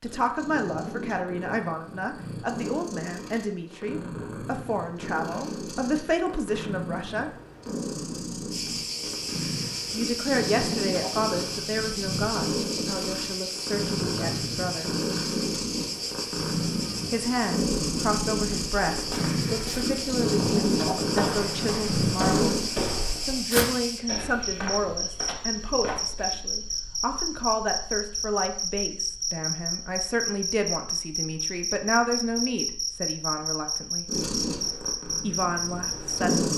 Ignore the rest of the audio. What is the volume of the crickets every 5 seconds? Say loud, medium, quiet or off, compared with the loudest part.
off, loud, loud, loud, loud, loud, loud, loud.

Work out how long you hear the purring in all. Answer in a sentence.
You can hear the purring for 25 seconds altogether.